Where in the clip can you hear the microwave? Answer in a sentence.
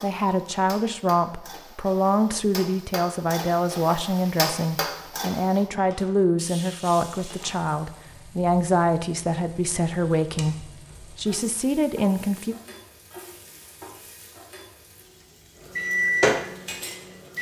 The microwave can be heard from 15.8 to 17.3 s.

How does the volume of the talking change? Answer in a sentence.
The volume of the talking stays about the same.